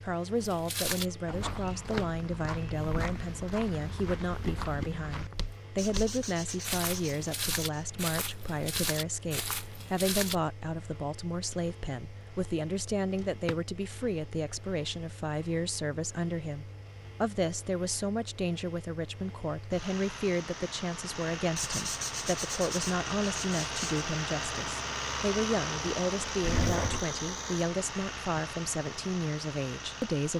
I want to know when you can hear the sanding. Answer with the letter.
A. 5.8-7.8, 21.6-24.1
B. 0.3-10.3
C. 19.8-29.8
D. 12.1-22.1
A.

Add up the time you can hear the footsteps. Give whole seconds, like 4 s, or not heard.
10 s.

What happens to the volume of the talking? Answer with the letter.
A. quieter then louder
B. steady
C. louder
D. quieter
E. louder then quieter
B.